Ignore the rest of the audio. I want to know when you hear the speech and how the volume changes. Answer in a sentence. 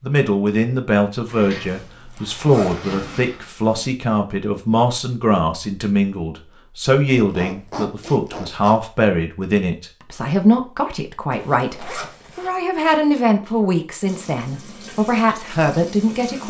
The speech can be heard from 0.0 to 16.4 s, at a steady volume.